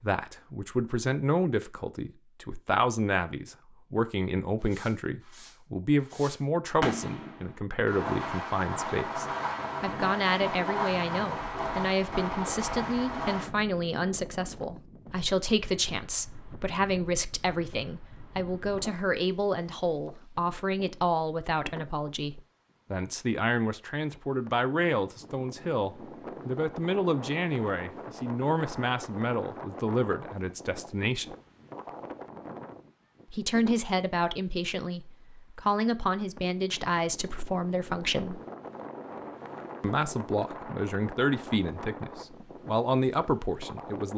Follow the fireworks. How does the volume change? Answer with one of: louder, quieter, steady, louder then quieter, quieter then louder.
louder.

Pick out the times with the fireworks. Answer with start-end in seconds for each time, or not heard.
4.6-13.5.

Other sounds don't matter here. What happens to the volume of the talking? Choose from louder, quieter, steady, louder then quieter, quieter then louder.
steady.